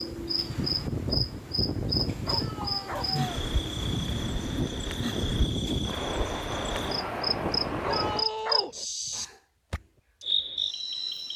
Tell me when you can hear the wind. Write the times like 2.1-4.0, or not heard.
0.0-8.2.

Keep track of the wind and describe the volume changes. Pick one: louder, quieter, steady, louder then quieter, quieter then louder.
steady.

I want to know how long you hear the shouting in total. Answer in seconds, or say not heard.
2 s.